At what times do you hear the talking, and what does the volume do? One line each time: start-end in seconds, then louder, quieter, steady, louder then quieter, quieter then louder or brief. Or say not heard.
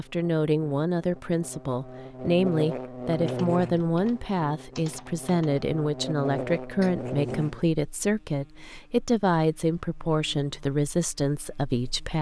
0.0-12.1 steady.